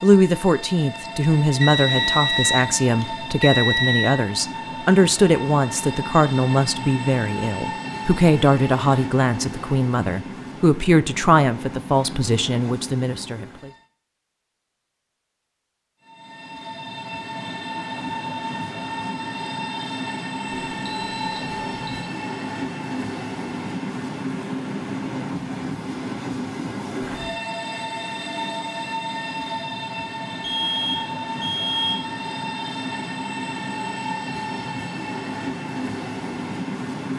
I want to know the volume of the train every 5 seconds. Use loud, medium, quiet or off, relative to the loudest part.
loud, loud, medium, loud, loud, loud, loud, loud.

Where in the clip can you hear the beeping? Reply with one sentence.
You can hear the beeping from 1.6 to 4.2 s, from 20.4 to 21.8 s and from 30.4 to 32.0 s.